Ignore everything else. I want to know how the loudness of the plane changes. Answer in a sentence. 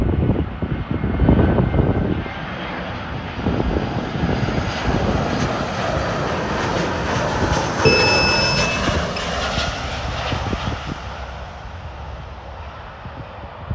The loudness of the plane goes down.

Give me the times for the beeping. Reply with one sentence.
The beeping can be heard from 7.8 to 9.2 s.